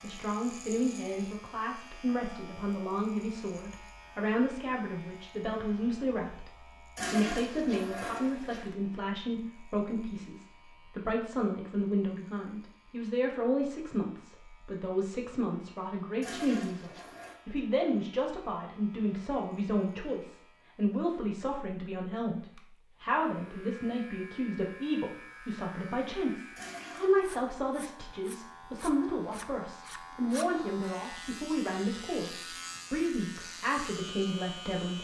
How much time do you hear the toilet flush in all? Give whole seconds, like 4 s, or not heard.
4 s.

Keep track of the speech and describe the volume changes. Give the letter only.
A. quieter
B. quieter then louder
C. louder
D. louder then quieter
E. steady
E.